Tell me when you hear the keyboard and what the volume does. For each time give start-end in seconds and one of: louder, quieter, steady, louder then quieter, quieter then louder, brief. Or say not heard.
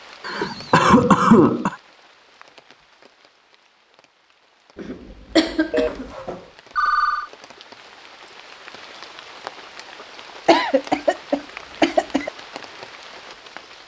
not heard.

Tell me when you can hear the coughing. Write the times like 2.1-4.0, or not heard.
0.2-1.8, 4.8-6.1, 10.4-12.3.